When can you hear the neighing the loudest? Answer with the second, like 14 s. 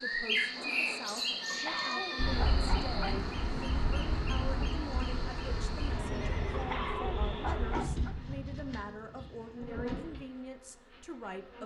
2 s.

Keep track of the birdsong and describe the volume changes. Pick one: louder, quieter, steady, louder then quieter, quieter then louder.
quieter.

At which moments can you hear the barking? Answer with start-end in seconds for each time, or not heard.
1.5-3.3, 6.5-8.2.